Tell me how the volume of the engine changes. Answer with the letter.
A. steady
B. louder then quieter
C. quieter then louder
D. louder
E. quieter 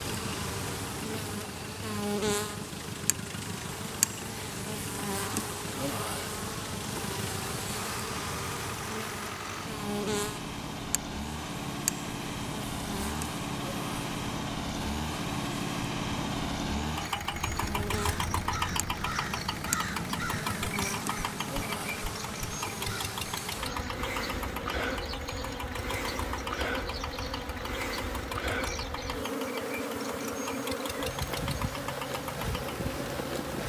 B.